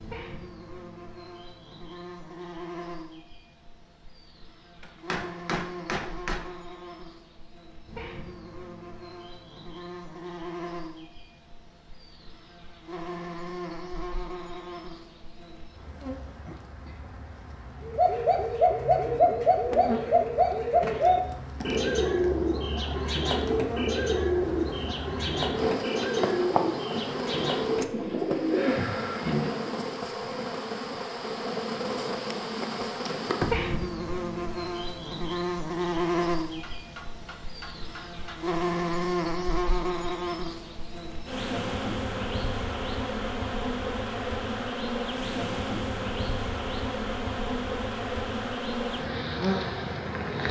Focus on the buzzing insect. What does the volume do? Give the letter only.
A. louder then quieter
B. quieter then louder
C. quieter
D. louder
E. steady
D.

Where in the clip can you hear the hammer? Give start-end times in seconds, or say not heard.
4.8-6.4, 36.5-38.4.